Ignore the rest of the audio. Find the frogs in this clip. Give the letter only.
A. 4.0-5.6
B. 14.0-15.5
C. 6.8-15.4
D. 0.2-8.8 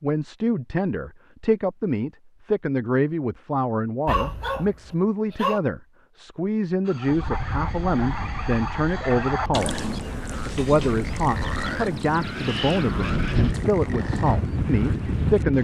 C.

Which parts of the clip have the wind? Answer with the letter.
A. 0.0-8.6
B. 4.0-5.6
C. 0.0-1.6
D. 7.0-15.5
D.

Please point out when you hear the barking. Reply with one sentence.
You can hear the barking from 4.0 to 5.6 s.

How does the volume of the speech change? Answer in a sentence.
The volume of the speech stays about the same.